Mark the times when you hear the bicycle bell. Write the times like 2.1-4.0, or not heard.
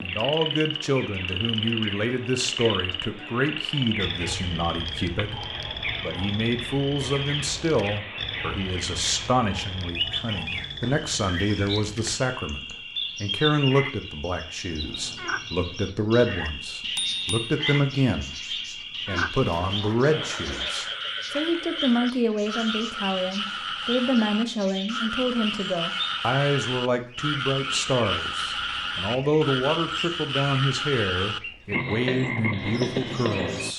16.9-17.5.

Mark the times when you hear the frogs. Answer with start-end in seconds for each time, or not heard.
0.0-33.7.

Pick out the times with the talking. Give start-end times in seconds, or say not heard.
0.0-33.7.